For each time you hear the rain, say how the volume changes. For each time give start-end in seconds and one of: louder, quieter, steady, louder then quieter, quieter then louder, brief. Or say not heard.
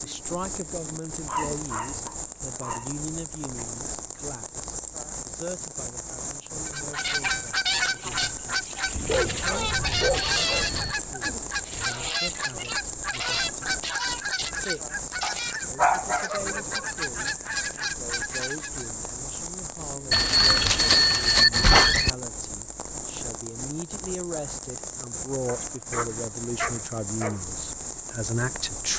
0.0-28.9 steady.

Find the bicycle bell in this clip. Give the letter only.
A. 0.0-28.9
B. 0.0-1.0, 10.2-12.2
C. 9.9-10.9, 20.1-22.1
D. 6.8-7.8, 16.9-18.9
C.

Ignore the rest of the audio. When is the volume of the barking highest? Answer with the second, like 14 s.
16 s.